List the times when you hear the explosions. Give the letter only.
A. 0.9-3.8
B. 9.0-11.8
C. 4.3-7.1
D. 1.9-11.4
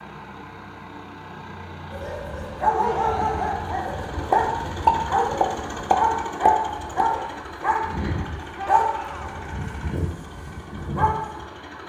C.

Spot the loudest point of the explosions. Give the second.
5 s.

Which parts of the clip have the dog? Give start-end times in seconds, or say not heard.
1.9-11.4.